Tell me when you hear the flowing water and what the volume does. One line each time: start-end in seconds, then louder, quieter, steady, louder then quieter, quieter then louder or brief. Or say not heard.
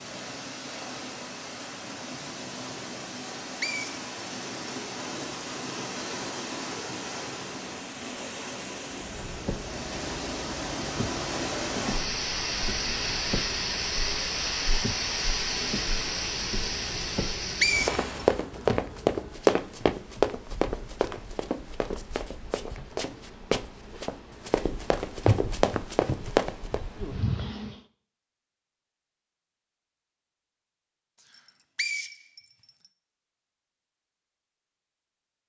0.0-18.5 louder.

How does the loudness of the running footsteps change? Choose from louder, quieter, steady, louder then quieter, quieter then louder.
quieter then louder.